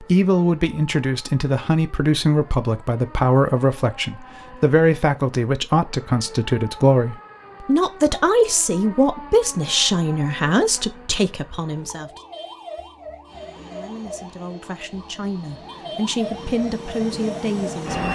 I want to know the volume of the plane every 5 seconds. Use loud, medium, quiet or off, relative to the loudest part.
off, off, quiet, loud.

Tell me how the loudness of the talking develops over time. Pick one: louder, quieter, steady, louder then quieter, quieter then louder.
quieter.